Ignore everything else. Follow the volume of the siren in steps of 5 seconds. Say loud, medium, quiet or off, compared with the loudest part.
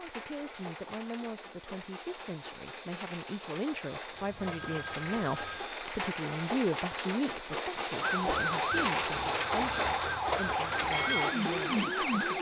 off, loud, loud.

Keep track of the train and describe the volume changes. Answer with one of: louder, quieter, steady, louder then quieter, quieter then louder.
louder.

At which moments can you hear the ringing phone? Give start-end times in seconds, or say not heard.
4.1-5.7.